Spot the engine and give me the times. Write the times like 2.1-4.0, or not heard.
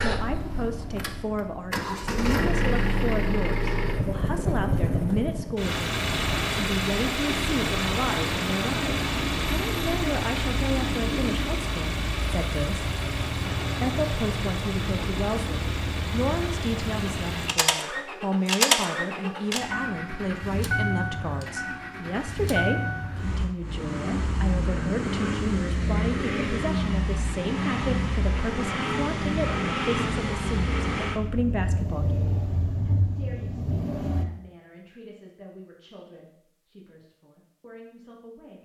0.0-34.2.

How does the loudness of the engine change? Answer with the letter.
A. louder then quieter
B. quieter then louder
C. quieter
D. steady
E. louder
D.